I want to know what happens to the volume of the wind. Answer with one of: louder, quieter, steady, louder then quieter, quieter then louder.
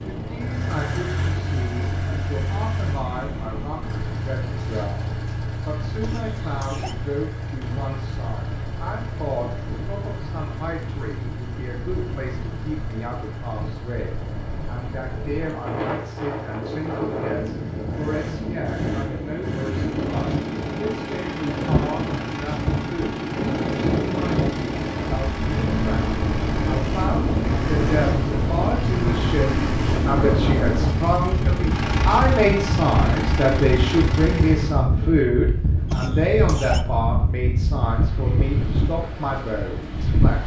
louder.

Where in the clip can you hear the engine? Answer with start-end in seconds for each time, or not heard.
0.0-34.9.